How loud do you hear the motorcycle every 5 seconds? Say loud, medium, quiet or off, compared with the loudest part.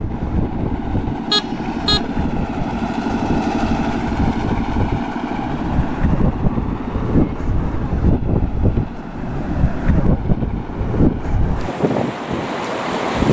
loud, medium, medium.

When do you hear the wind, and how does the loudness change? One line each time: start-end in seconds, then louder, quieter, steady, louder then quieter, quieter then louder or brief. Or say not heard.
0.0-13.2 louder.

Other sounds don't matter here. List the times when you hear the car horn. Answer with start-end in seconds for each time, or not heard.
1.3-2.0.